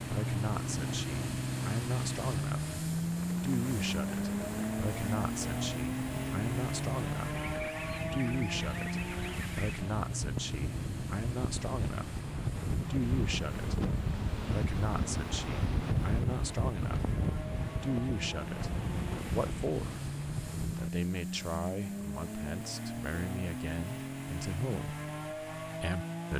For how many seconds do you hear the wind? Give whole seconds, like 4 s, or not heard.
21 s.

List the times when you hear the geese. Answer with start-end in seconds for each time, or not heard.
7.3-9.8.